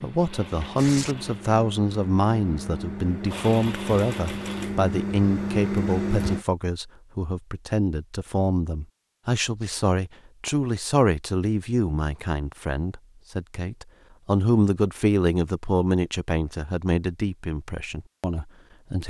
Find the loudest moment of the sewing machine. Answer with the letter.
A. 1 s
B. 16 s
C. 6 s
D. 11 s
C.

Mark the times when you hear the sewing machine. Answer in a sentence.
You can hear the sewing machine from 0.0 to 6.5 s.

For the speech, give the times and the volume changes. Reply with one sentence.
The speech can be heard from 0.0 to 19.0 s, at a steady volume.